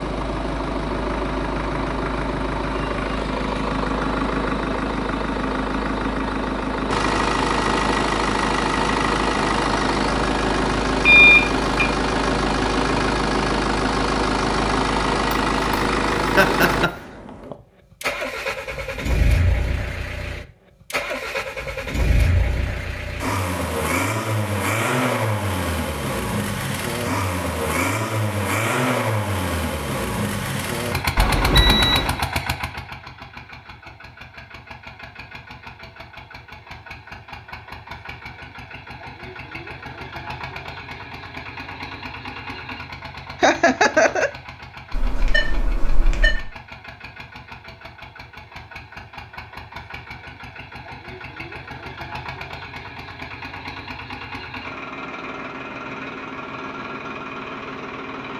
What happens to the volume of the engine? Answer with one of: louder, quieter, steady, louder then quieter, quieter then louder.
quieter.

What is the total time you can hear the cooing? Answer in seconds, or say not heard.
not heard.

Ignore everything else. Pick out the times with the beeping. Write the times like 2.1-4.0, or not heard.
11.1-11.8, 31.1-32.1, 44.9-46.5.